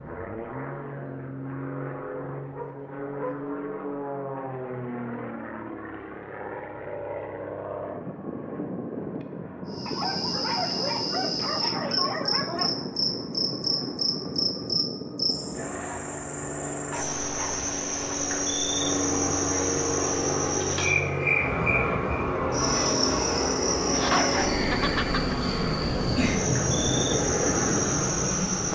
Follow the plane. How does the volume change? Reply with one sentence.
The loudness of the plane goes up.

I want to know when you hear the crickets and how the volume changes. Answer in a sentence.
You can hear the crickets from 9.7 to 28.7 s, at a steady volume.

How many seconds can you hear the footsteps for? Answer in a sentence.
You can't hear the footsteps here.